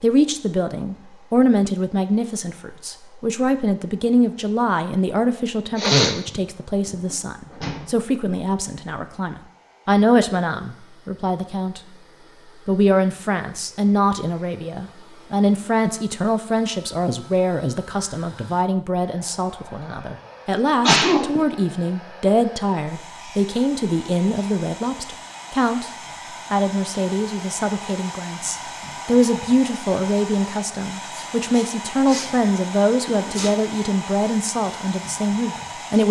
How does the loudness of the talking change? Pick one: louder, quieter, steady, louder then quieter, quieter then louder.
steady.